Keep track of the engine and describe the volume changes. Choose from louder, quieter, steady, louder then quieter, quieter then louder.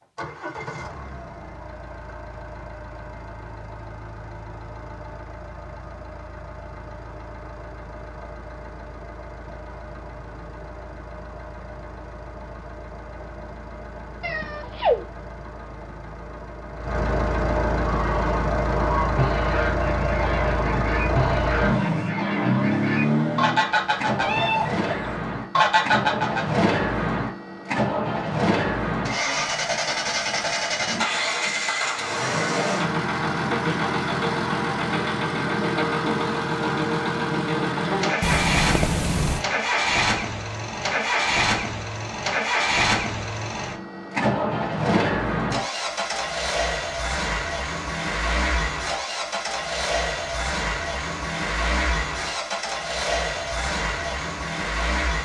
louder.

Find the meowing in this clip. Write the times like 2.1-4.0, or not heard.
14.2-15.1, 24.2-24.8, 38.2-39.5.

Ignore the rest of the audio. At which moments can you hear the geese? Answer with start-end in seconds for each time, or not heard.
17.9-26.6.